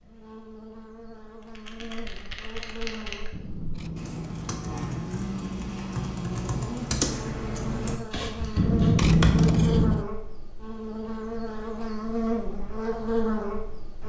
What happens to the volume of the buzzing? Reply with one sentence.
The loudness of the buzzing goes up.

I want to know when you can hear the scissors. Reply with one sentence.
You can hear the scissors from 3.3 to 4.8 s and from 8.6 to 10.1 s.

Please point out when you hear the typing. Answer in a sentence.
The typing can be heard from 1.4 to 9.7 s.